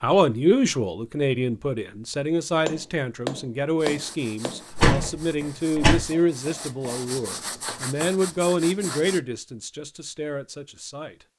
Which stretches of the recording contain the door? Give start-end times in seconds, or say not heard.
4.7-6.0.